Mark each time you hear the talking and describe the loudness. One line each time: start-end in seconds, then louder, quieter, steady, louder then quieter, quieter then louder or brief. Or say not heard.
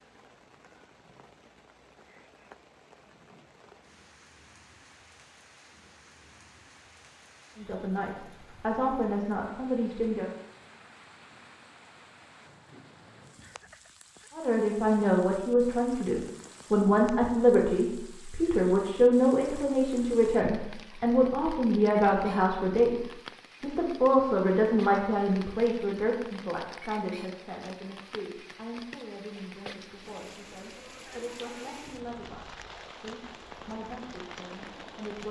7.5-10.3 brief
14.3-35.2 quieter.